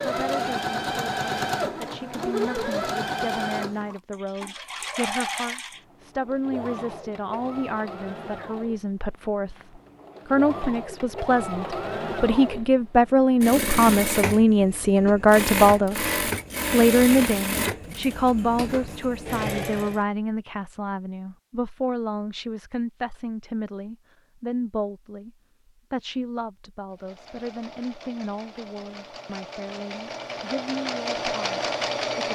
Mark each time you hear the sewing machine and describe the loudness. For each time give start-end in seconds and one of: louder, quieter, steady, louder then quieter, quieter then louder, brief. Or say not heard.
0.0-20.1 quieter then louder
26.9-32.3 louder.